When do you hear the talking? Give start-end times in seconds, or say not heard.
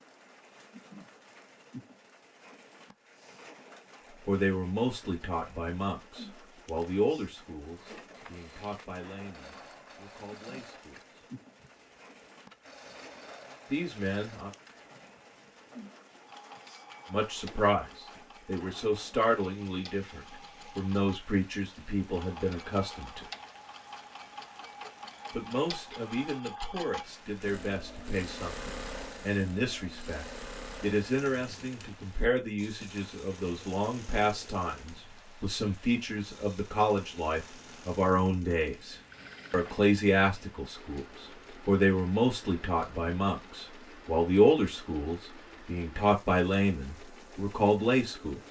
4.2-11.2, 13.7-14.5, 17.1-23.2, 25.3-48.4.